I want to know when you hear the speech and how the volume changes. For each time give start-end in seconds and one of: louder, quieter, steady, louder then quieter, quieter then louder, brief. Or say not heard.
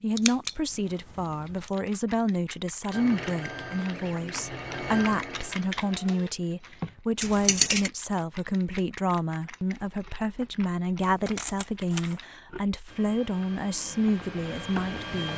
0.0-15.3 steady.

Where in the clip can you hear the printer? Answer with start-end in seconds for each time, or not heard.
2.9-6.3, 12.8-15.3.